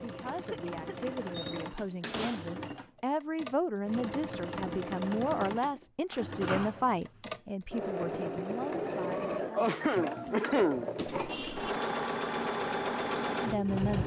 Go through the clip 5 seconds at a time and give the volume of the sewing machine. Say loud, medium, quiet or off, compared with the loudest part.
medium, loud, loud.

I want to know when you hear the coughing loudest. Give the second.
11 s.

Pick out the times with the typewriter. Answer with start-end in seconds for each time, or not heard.
not heard.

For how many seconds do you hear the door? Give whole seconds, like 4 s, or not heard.
3 s.